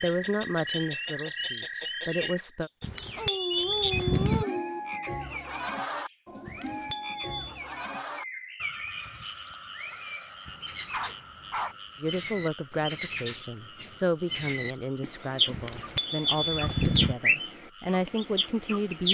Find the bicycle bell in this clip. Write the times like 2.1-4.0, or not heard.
2.8-4.5, 6.5-7.6, 15.5-17.1.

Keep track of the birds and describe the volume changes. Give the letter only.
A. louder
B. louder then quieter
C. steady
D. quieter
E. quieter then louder
A.